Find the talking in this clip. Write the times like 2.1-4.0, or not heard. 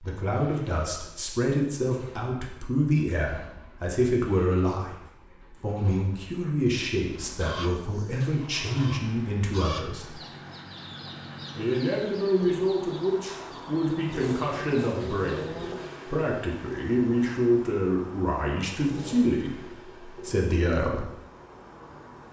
0.0-10.2, 11.6-21.1.